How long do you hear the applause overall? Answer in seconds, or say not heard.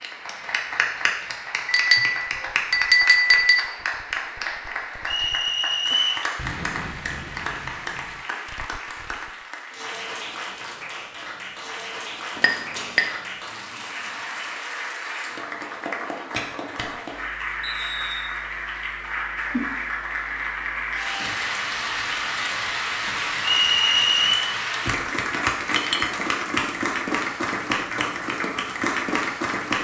30 s.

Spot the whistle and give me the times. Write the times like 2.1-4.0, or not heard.
5.0-6.2, 17.6-18.4, 23.4-24.4.